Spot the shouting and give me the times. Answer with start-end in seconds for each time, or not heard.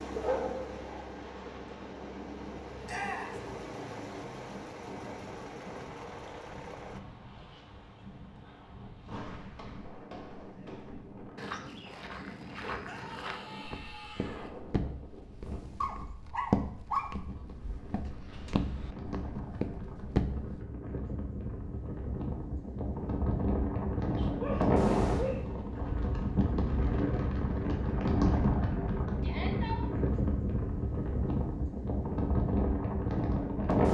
2.9-3.4, 12.8-14.5, 29.2-29.9.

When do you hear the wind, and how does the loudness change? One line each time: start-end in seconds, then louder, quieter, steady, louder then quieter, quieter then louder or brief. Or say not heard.
0.0-33.9 louder.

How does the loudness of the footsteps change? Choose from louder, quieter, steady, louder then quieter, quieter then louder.
louder.